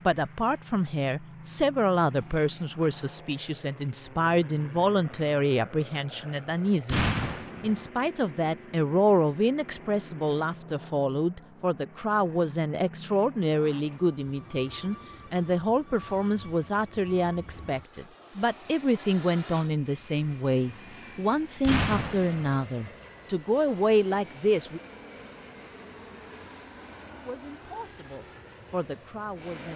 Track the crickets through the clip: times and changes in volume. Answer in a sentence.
You can't hear the crickets here.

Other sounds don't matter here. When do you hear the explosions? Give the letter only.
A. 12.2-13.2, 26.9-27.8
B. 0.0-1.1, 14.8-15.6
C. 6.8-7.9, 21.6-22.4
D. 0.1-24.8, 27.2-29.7
C.